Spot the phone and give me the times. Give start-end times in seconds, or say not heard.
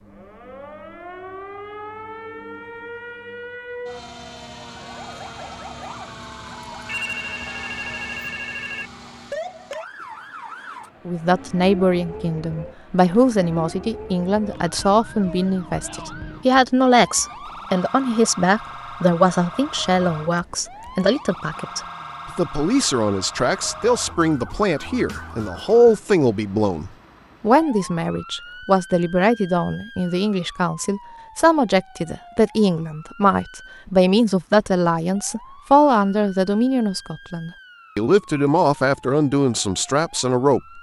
6.8-8.9.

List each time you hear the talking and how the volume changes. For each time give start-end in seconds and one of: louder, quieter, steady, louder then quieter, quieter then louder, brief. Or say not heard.
11.1-40.6 steady.